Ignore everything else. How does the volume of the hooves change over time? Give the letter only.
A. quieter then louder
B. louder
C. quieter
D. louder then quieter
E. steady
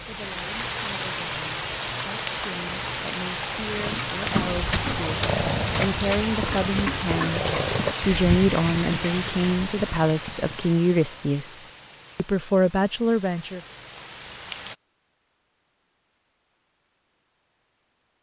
C.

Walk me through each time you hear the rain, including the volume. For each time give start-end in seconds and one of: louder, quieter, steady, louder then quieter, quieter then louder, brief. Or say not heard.
0.0-14.8 quieter.